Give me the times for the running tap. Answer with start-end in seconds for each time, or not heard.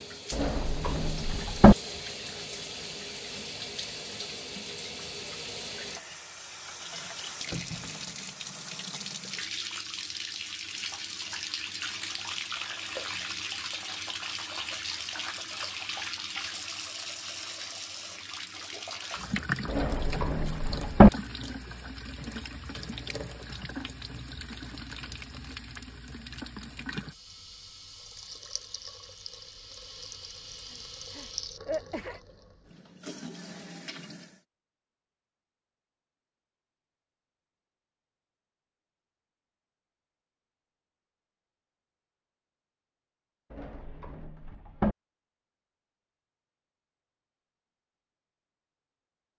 0.0-34.5.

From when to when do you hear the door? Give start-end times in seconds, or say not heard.
0.3-1.8, 19.6-21.1, 43.5-45.0.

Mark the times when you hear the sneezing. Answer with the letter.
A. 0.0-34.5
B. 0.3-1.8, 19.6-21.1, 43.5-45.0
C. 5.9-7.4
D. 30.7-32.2
D.